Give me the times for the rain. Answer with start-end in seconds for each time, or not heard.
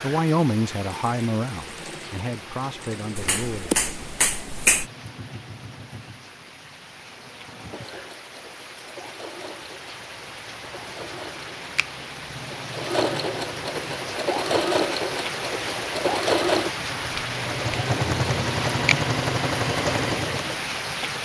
0.0-21.2.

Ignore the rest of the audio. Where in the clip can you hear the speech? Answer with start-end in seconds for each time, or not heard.
0.0-3.8.